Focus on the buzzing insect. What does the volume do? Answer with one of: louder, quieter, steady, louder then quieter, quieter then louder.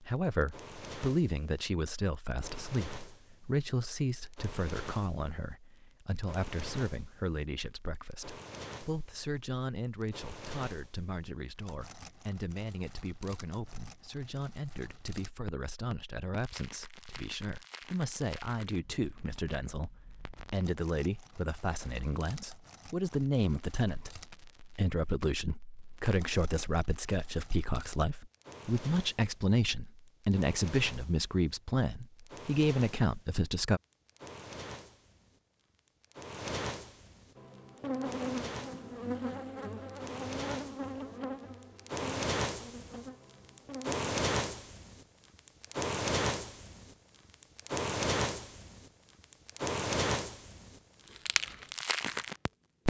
quieter.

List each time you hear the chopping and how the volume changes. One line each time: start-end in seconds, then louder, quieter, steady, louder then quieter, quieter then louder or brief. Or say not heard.
not heard.